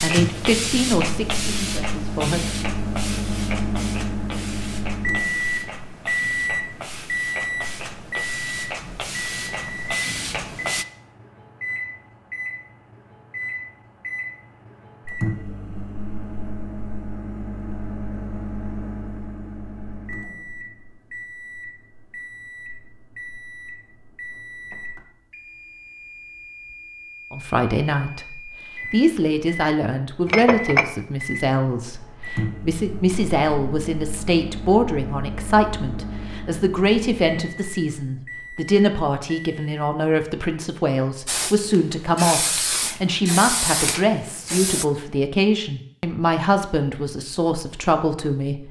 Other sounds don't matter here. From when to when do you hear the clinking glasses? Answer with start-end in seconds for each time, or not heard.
30.2-30.9.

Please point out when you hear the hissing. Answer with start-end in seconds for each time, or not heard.
0.0-10.8, 41.2-44.9.